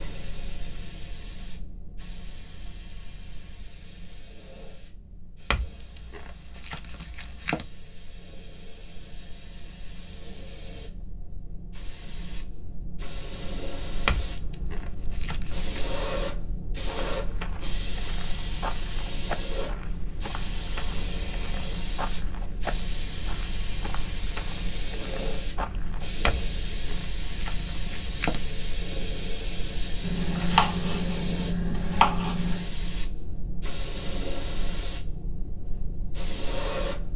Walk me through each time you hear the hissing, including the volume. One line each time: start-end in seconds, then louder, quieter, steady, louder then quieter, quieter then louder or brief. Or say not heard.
0.0-37.1 louder.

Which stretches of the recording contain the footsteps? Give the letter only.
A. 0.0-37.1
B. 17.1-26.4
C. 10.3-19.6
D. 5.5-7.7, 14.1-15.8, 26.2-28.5
B.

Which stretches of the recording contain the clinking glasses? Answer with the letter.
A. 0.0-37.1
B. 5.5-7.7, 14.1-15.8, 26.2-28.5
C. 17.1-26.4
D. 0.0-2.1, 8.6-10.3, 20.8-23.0
B.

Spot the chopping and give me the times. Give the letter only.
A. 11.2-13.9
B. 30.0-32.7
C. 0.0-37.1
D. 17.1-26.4
B.